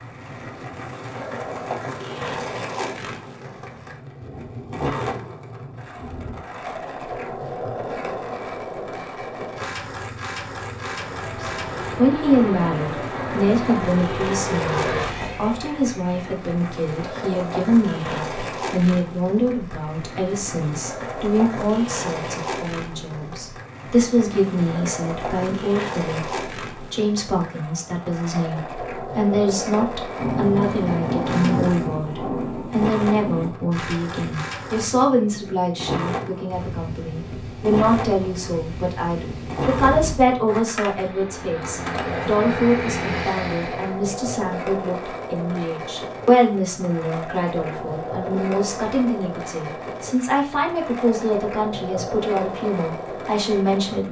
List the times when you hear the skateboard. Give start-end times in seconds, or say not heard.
0.0-54.0.